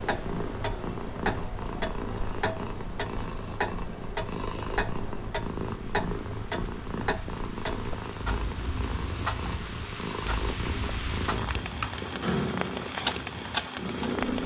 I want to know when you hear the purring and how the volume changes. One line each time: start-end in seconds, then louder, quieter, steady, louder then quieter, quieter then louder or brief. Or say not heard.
0.0-14.4 steady.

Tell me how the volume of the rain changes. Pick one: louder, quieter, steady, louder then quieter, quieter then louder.
louder.